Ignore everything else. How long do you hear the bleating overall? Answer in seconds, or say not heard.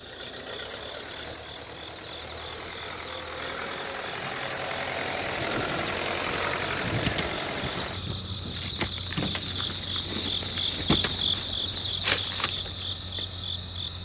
not heard.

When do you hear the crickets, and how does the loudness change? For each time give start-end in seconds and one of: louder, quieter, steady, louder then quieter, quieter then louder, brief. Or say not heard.
0.0-14.0 louder.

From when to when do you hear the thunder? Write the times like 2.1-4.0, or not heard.
5.2-8.7.